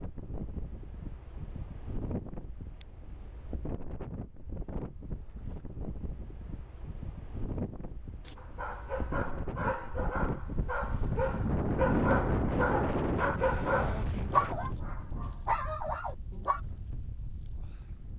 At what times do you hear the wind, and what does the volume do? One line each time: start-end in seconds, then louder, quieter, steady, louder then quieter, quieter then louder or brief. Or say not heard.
0.0-18.1 louder then quieter.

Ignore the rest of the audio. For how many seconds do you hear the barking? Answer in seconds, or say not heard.
8 s.